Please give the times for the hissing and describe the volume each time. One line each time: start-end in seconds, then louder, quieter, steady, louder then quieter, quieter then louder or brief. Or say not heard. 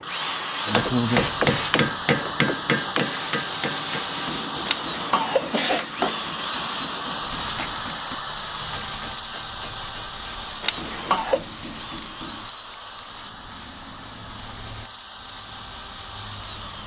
0.0-16.8 quieter.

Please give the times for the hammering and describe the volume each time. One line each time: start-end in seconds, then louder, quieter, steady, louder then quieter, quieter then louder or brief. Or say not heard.
0.7-12.5 quieter.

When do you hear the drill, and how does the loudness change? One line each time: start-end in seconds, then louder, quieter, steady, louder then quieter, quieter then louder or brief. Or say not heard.
0.0-16.8 quieter.